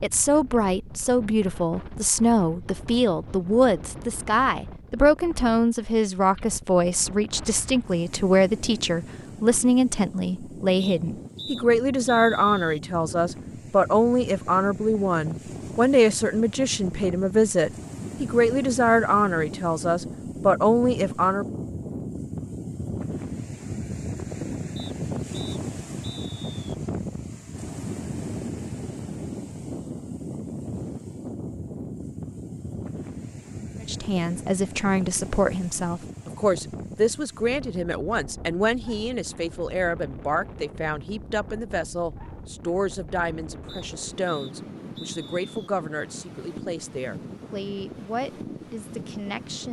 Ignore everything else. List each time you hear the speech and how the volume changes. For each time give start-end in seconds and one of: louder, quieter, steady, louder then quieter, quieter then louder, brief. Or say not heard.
0.0-21.4 steady
33.8-49.6 quieter.